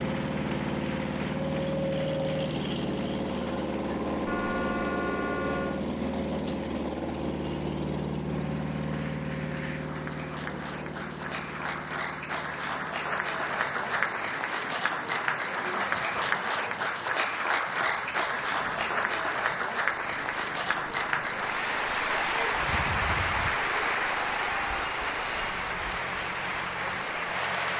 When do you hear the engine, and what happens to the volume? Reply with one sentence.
You can hear the engine from 0.0 to 27.7 s, getting quieter.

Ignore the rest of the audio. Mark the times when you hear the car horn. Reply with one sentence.
You can hear the car horn from 4.2 to 5.8 s and from 22.6 to 23.6 s.